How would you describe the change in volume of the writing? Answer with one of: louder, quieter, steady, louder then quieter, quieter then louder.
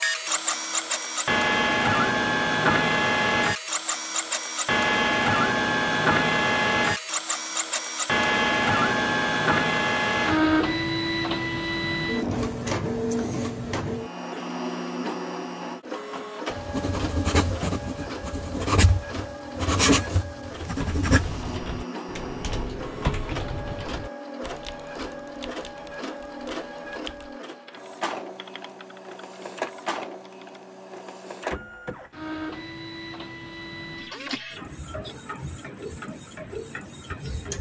quieter then louder.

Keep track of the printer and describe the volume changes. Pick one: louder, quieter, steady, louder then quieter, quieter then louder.
quieter.